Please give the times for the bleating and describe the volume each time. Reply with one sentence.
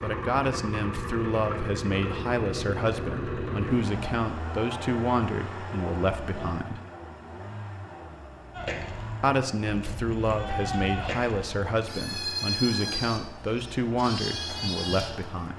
You can hear the bleating from 8.5 to 15.5 s, getting louder.